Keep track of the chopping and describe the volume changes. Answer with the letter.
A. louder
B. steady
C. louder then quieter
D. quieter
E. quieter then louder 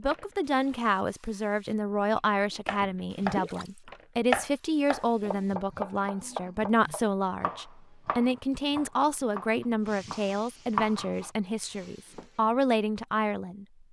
E.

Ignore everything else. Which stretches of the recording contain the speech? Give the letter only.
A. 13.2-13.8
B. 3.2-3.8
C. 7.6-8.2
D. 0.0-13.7
D.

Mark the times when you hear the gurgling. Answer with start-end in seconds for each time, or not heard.
3.2-3.8.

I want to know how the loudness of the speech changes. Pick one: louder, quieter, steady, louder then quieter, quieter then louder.
steady.